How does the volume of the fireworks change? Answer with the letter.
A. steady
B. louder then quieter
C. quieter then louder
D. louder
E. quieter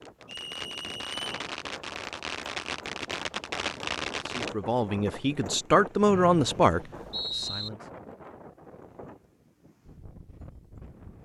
D.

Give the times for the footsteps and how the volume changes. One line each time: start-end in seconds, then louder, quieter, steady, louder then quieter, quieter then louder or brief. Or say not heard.
not heard.